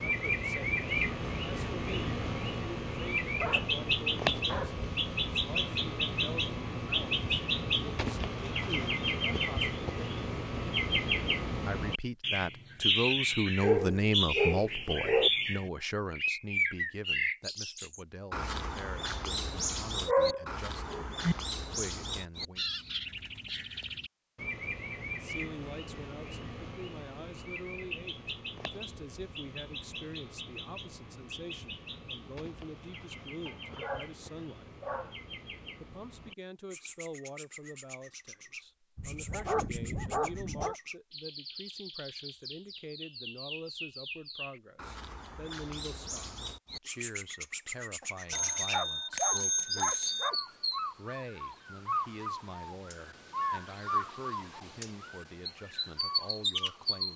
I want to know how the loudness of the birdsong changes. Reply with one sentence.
The volume of the birdsong goes down, then up.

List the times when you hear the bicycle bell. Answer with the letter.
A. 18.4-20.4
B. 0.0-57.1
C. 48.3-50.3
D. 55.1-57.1
C.